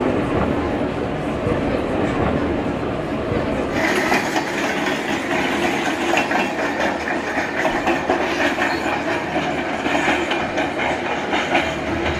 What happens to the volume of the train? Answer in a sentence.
The loudness of the train stays about the same.